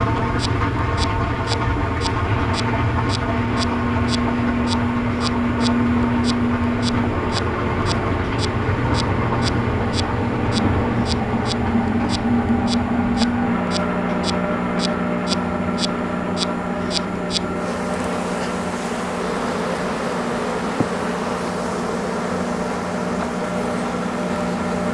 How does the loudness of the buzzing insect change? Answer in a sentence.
The loudness of the buzzing insect goes up.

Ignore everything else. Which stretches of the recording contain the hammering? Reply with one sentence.
The hammering can't be heard in this clip.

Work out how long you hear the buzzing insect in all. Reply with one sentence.
You can hear the buzzing insect for 25 seconds altogether.